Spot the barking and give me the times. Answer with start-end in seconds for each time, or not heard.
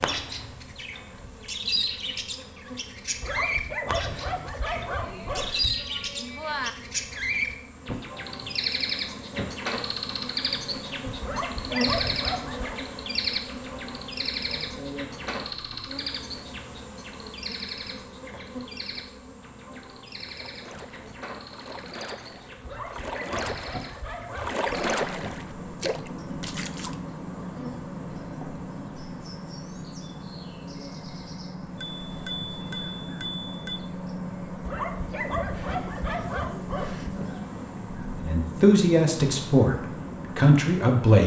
3.2-5.8, 11.2-12.8, 22.6-24.9, 34.6-37.1.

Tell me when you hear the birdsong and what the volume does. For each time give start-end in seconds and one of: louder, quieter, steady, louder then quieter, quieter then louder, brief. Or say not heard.
0.0-41.0 quieter then louder.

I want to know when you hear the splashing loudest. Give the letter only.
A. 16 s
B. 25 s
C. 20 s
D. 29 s
B.